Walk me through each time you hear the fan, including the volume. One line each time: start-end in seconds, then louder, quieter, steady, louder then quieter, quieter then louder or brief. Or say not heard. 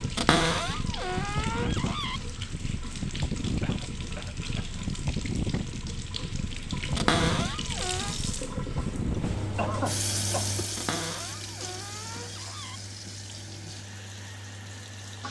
0.0-15.2 quieter.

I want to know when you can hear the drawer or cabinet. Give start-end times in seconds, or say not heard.
0.1-2.2, 7.0-8.2, 10.8-12.8.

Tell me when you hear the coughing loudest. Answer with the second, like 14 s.
10 s.